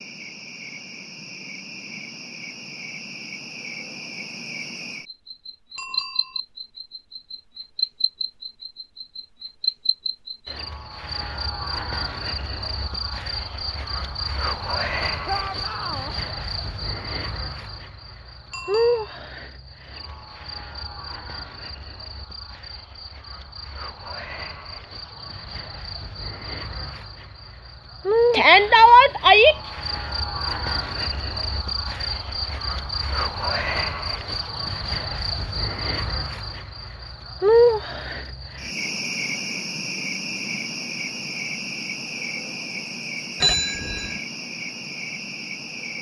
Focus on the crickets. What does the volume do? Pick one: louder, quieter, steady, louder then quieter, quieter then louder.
louder.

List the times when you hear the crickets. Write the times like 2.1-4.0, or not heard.
0.0-45.9.